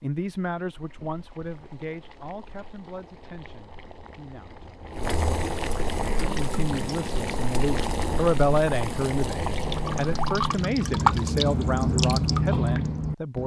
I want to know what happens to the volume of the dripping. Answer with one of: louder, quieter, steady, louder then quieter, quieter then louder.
louder.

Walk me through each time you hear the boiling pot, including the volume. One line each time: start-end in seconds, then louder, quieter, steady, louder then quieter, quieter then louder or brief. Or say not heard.
0.1-10.5 louder.